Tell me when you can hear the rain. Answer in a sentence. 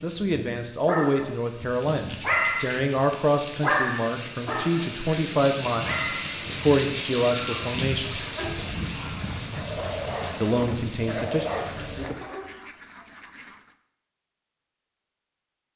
You can hear the rain from 0.0 to 12.1 s.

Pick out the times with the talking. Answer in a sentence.
You can hear the talking from 0.0 to 8.2 s and from 10.4 to 11.4 s.